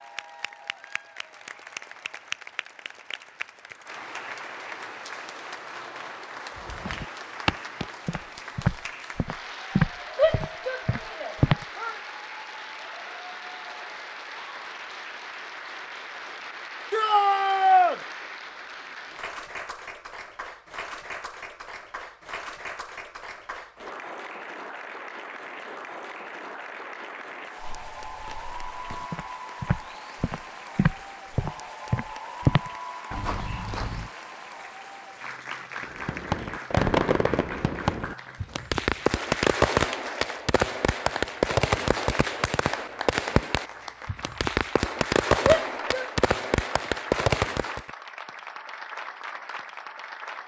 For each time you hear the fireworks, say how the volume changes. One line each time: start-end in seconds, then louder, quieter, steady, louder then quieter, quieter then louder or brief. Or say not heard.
35.8-47.9 steady.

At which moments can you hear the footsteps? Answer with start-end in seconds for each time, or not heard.
6.5-11.7, 27.6-34.1.